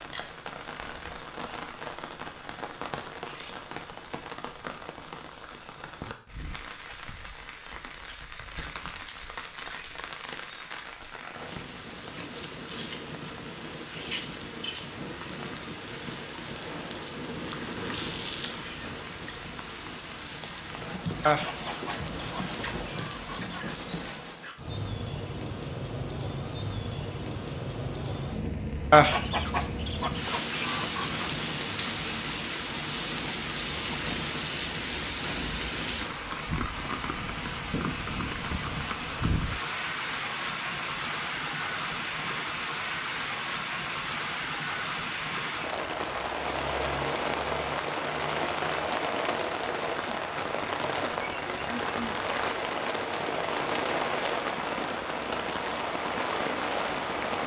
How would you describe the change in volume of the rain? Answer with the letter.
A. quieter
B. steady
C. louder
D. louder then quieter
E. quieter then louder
C.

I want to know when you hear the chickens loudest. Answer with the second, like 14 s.
29 s.